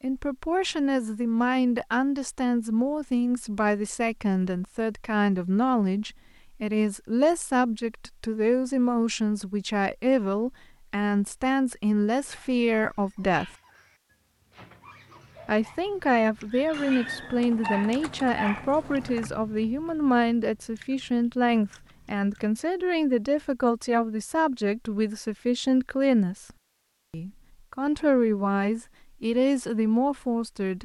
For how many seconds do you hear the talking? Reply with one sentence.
The talking can be heard for 28 seconds in total.